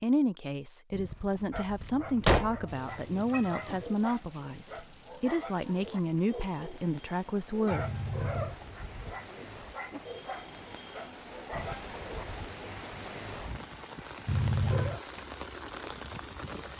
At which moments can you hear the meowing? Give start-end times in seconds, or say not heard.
1.9-3.9, 7.7-8.6, 14.2-15.0.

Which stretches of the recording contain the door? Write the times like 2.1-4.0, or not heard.
0.9-2.6, 8.4-9.2, 11.5-12.6.